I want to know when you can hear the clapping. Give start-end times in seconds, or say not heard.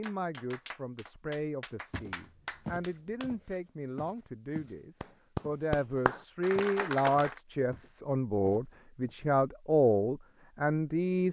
0.0-3.3, 5.0-7.4.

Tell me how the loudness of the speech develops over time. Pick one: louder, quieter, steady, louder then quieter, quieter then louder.
louder.